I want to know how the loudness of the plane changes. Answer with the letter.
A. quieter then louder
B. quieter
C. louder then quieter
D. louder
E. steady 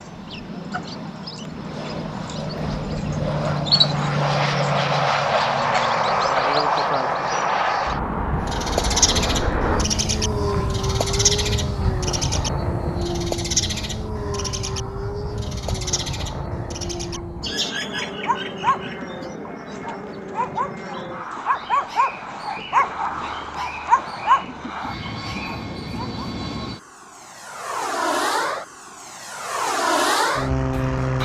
A.